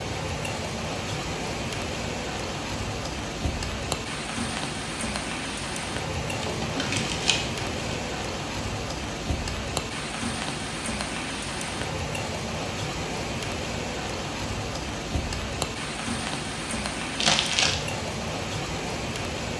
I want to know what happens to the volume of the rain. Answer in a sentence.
The loudness of the rain stays about the same.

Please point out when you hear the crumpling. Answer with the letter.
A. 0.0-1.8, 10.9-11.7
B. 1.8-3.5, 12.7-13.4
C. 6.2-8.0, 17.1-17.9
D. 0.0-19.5
C.